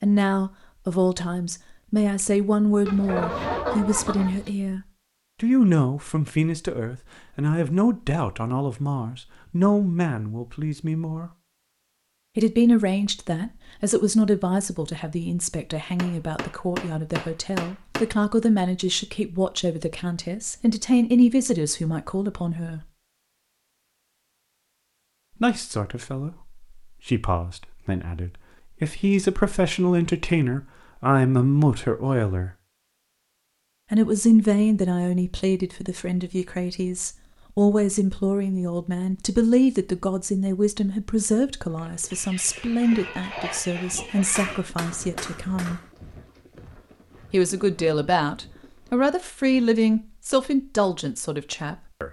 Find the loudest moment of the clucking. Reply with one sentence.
The volume of the clucking peaks at 4 seconds.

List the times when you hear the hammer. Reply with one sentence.
The hammer can be heard from 15.9 to 18.1 s and from 44.4 to 45.9 s.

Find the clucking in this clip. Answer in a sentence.
You can hear the clucking from 2.9 to 4.5 s and from 42.1 to 44.6 s.